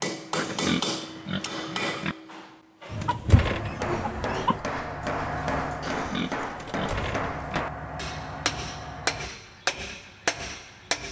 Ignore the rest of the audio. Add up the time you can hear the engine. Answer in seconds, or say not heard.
6 s.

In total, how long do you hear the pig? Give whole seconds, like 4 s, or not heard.
4 s.